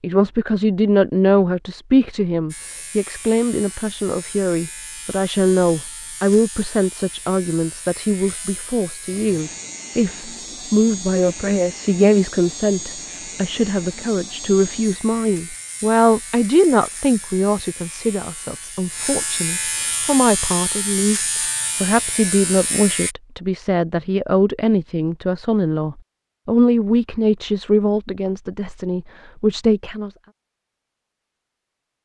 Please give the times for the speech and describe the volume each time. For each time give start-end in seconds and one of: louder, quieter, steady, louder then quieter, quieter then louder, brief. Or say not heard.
0.0-30.1 steady.